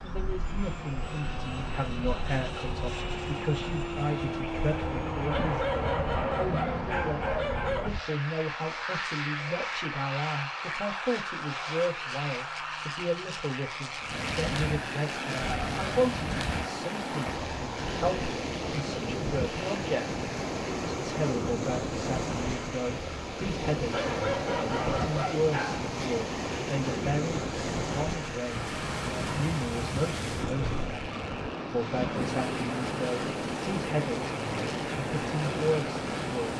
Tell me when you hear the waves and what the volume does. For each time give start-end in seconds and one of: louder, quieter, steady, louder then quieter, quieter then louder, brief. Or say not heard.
14.0-36.5 steady.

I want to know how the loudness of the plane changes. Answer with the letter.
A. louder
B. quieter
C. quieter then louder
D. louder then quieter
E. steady
B.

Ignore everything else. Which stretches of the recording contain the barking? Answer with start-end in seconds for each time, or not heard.
5.3-7.9, 23.9-25.9.